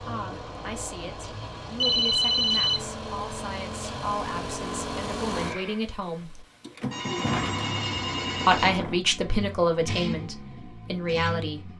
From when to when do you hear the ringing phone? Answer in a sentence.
The ringing phone can be heard from 1.8 to 2.8 s and from 6.9 to 8.8 s.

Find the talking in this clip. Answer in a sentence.
The talking can be heard from 0.0 to 6.5 s and from 8.4 to 11.7 s.